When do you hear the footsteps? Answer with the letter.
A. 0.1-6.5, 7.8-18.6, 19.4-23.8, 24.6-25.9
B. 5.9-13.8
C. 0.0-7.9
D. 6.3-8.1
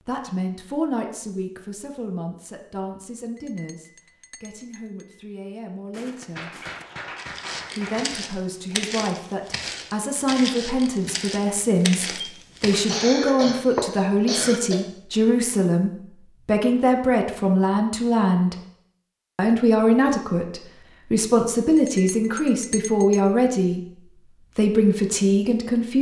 B.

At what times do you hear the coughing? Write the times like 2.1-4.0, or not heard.
12.8-14.8.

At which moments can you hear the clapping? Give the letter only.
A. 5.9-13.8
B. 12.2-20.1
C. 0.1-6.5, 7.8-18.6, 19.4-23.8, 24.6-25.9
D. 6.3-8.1
D.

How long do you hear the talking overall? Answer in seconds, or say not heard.
23 s.